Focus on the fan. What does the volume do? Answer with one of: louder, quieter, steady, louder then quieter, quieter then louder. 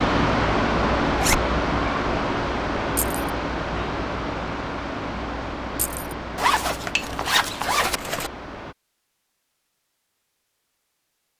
quieter.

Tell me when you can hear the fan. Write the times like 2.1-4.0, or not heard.
0.0-8.8.